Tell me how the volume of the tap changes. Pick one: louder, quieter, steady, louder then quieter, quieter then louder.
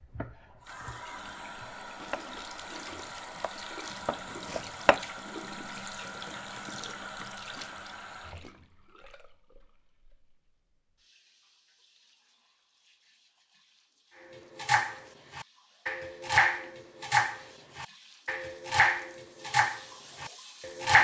quieter then louder.